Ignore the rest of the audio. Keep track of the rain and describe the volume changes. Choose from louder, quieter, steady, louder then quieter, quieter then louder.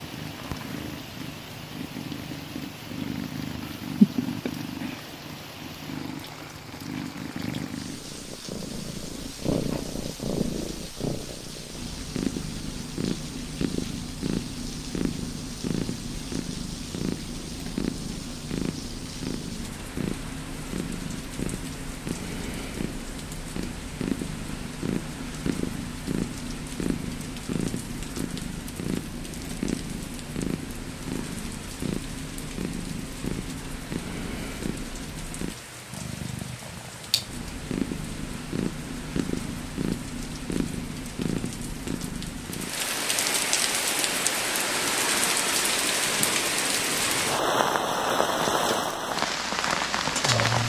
louder.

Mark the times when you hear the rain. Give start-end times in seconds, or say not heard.
0.0-50.6.